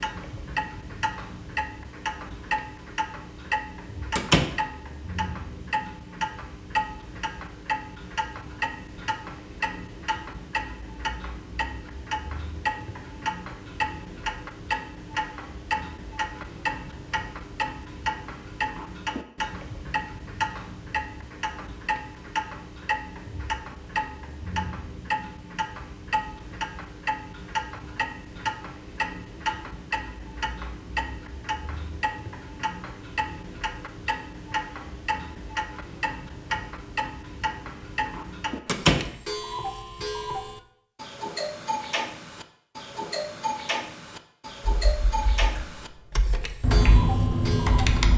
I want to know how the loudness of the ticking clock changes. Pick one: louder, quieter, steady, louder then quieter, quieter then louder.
steady.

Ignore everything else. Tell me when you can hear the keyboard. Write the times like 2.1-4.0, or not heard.
44.6-48.1.